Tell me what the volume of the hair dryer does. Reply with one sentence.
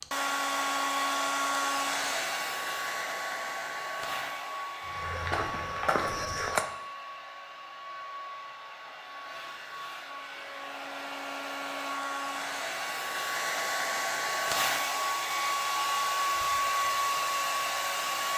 The volume of the hair dryer goes down, then up.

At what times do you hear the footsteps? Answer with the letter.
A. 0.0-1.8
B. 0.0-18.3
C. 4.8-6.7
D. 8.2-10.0
C.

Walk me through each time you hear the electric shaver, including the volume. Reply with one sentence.
You can't hear the electric shaver here.